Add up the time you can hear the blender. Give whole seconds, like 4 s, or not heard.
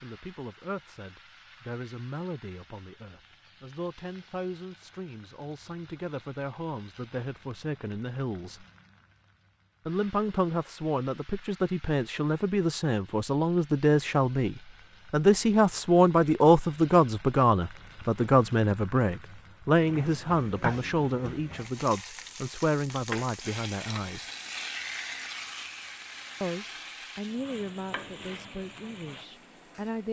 not heard.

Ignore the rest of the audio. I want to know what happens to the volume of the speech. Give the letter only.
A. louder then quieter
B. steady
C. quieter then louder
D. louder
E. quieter
A.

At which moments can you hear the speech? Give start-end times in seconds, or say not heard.
0.0-8.7, 9.8-24.3, 26.4-30.0.